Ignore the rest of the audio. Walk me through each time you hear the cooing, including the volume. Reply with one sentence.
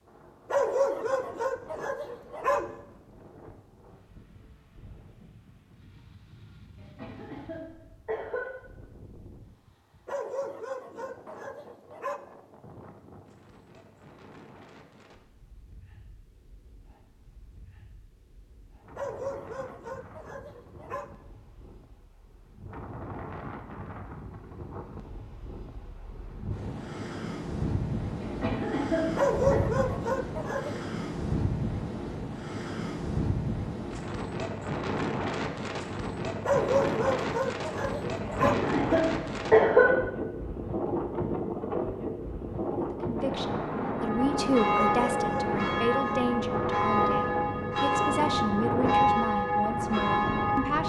The cooing can't be heard in this clip.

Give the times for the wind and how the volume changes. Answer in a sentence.
The wind can be heard from 0.0 to 50.8 s, getting louder.